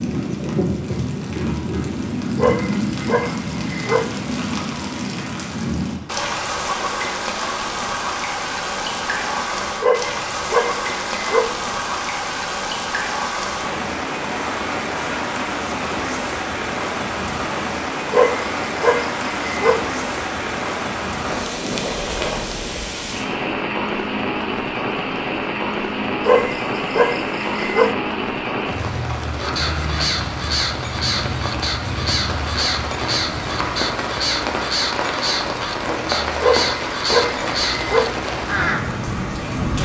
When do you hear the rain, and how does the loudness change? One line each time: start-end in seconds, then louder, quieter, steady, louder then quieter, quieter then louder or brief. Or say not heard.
0.0-39.7 steady.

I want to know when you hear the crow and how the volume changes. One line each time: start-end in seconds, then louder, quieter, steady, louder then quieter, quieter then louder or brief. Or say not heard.
29.4-38.9 steady.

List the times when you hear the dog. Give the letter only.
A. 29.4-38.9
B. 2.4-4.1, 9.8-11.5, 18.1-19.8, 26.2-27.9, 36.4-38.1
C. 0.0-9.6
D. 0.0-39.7
B.